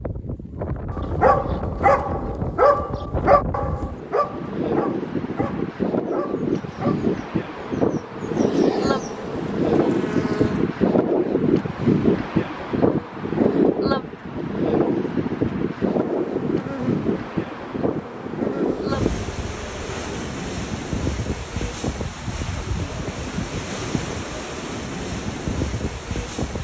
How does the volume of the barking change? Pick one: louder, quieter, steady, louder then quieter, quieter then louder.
quieter.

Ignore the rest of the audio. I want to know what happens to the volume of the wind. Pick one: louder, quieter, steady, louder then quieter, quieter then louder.
louder then quieter.